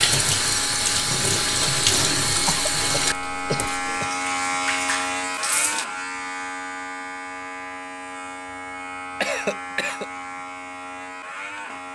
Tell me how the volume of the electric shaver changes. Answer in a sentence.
The loudness of the electric shaver goes up, then down.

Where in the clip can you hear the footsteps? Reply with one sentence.
You can't hear the footsteps here.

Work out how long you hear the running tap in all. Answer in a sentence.
You can hear the running tap for 6 seconds altogether.